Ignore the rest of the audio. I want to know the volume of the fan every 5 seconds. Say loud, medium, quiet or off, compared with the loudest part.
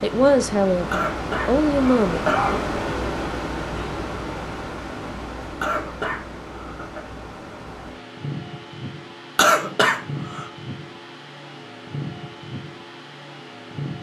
loud, medium, medium.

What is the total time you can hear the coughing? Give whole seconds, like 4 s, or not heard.
4 s.